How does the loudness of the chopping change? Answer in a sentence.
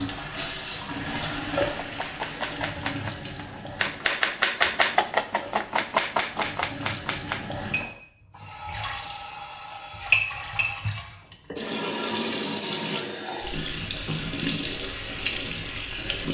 The volume of the chopping goes up, then down.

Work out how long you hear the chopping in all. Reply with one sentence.
The chopping can be heard for 6 seconds in total.